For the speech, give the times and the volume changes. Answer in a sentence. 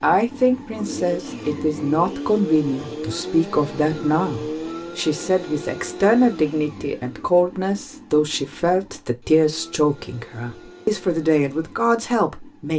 The speech can be heard from 0.0 to 12.7 s, at a steady volume.